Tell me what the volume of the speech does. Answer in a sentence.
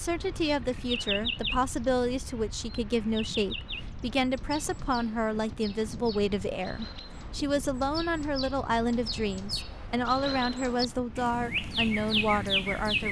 The volume of the speech stays about the same.